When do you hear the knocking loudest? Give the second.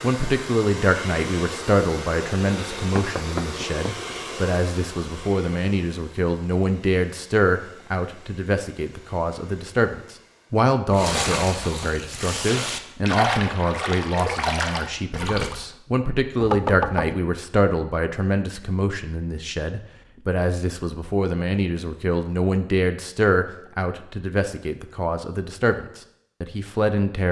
17 s.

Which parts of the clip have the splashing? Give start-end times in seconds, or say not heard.
10.9-15.6.